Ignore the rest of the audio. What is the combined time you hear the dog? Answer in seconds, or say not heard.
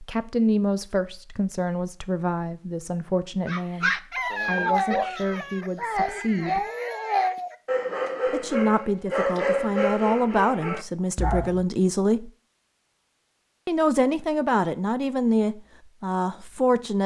8 s.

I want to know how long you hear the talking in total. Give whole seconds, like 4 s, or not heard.
14 s.